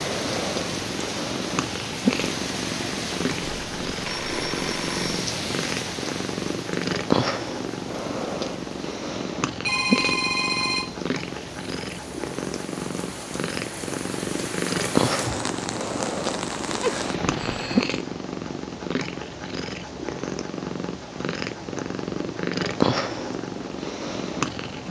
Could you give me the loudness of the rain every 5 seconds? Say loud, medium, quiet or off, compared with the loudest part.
loud, loud, medium, loud, off.